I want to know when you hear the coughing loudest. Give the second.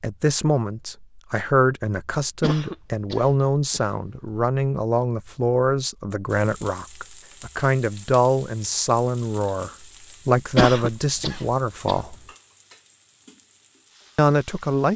11 s.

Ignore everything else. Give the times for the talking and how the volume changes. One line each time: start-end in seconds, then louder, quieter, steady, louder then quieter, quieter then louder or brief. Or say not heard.
0.0-12.2 steady
14.2-14.9 brief.